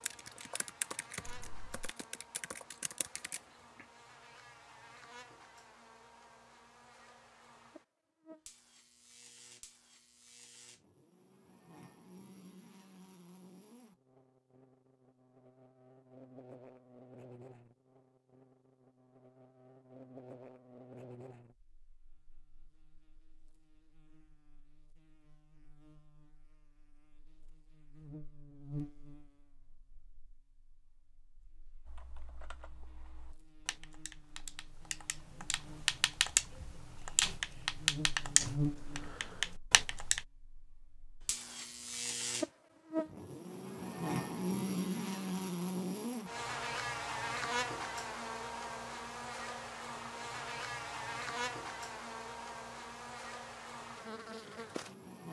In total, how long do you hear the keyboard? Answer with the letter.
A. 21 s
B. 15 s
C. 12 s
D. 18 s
C.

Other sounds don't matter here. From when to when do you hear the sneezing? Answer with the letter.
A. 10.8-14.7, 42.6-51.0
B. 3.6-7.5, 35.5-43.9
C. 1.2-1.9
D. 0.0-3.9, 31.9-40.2
C.